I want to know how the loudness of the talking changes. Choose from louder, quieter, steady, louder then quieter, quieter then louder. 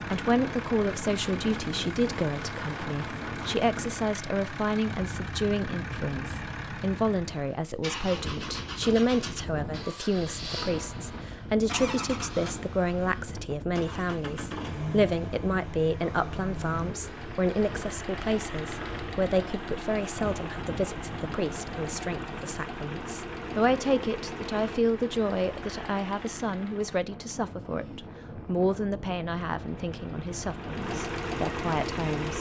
steady.